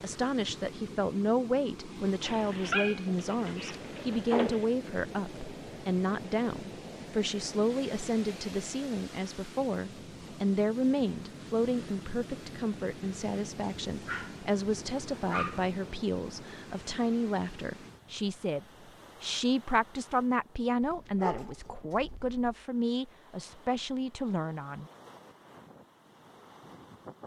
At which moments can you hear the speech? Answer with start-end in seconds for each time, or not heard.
0.0-24.9.